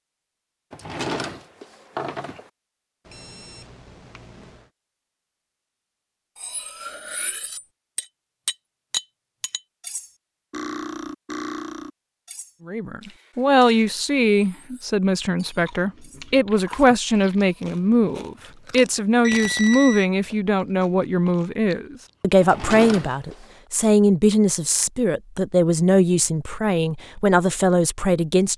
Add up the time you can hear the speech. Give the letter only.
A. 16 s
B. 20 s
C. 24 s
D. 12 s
A.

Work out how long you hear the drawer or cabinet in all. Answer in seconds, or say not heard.
3 s.